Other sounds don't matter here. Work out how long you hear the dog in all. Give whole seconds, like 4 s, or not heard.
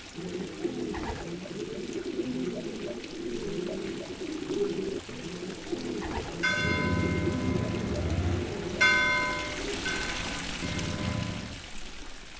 not heard.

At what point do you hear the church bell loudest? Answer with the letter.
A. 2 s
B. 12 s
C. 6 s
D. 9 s
D.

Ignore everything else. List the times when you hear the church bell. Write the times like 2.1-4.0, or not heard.
6.2-11.7.